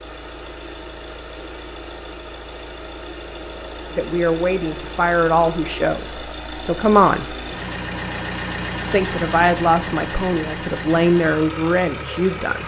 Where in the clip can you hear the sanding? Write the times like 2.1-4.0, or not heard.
not heard.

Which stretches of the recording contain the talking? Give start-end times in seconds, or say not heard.
4.0-7.3, 8.9-12.6.